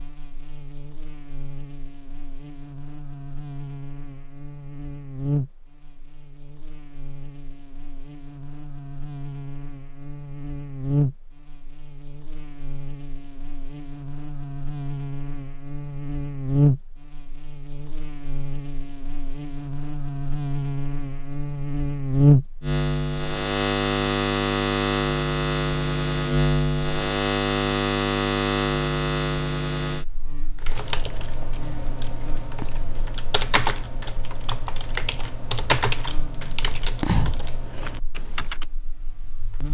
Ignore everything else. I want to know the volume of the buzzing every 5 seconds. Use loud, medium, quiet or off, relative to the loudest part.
quiet, quiet, medium, medium, loud, loud, quiet, quiet.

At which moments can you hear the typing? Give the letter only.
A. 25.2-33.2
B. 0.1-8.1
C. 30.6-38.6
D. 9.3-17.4
C.